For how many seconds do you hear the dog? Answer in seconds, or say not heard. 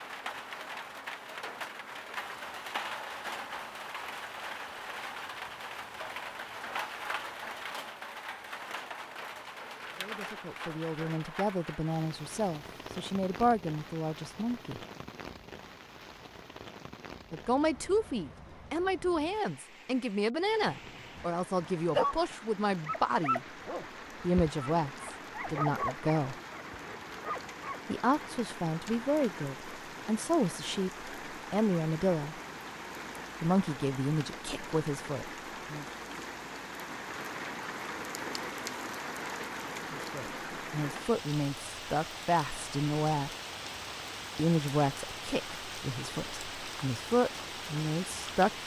7 s.